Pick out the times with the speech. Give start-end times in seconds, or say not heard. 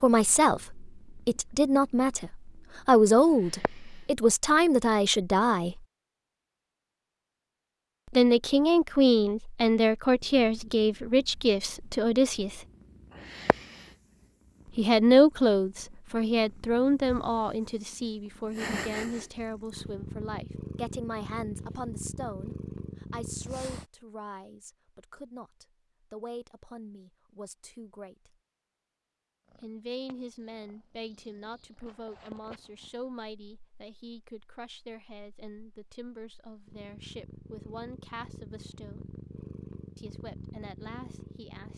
0.0-5.8, 8.1-12.6, 14.8-28.4, 29.6-39.1, 40.0-41.7.